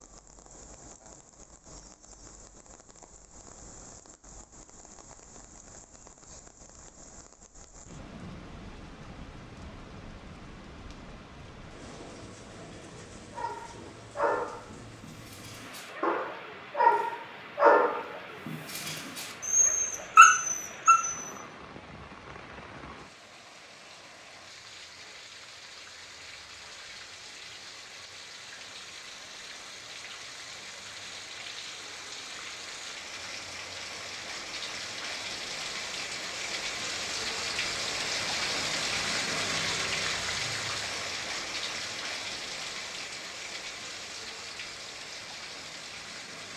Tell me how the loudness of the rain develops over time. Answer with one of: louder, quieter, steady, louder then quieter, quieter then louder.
louder.